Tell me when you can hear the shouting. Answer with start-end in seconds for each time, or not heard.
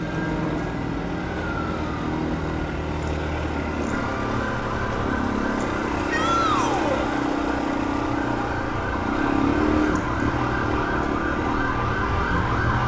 6.1-7.0.